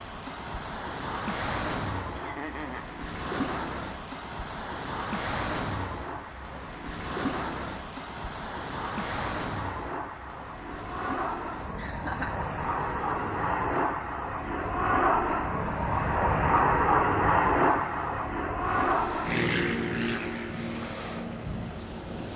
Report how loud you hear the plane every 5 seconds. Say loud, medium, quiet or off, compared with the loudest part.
quiet, quiet, medium, loud, medium.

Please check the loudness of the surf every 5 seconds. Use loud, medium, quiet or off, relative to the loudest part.
loud, loud, medium, quiet, medium.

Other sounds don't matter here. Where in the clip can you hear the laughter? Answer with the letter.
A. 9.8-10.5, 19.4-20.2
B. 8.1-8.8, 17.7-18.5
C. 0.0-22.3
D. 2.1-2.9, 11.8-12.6
D.